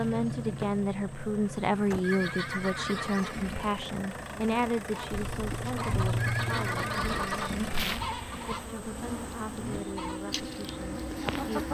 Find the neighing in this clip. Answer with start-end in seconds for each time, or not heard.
2.0-3.8, 6.2-7.8.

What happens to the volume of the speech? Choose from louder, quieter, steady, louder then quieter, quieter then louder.
quieter.